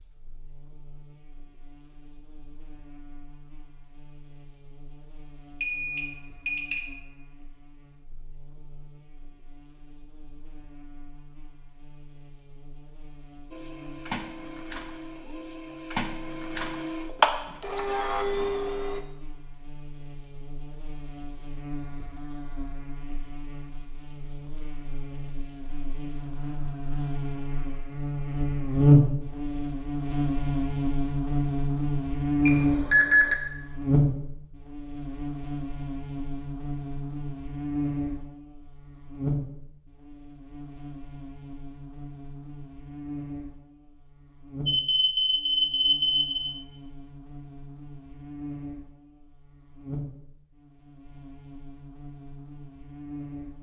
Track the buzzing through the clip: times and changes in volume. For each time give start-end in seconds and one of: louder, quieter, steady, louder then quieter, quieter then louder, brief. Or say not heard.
0.0-53.5 louder then quieter.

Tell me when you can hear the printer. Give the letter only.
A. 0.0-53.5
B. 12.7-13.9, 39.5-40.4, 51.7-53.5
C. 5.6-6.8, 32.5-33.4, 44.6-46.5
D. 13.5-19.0
D.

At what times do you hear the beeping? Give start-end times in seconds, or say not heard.
5.6-6.8, 32.5-33.4, 44.6-46.5.